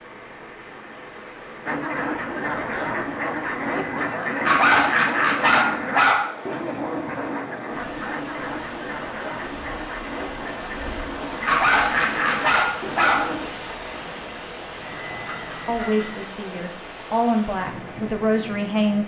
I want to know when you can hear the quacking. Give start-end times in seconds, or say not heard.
1.6-13.5.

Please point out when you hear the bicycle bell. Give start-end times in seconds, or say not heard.
3.5-4.5, 14.8-16.2.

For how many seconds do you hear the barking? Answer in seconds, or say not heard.
4 s.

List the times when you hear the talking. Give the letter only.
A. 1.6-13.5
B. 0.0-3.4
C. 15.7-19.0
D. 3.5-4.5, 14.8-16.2
C.